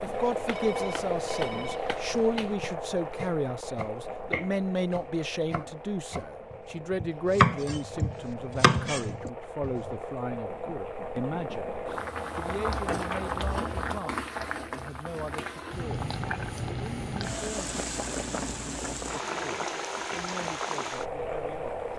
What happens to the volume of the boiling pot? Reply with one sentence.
The volume of the boiling pot goes down, then up.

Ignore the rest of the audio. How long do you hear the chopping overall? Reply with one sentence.
You can hear the chopping for 10 seconds altogether.